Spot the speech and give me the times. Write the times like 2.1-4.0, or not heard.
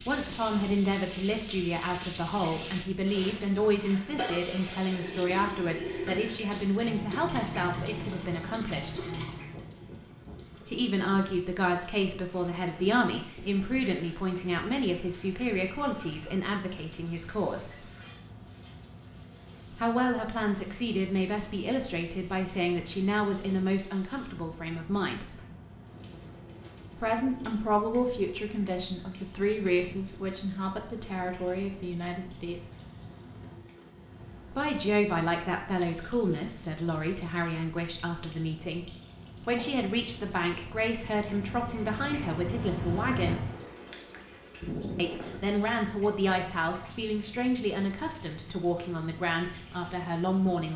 0.1-9.2, 10.7-17.9, 19.7-25.4, 27.0-32.6, 34.5-43.5, 45.0-50.7.